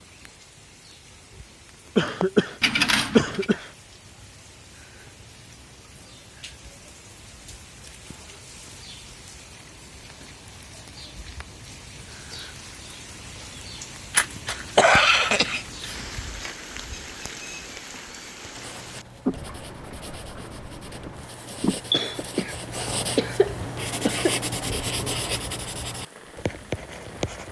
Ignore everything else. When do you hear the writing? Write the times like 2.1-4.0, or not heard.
18.6-27.4.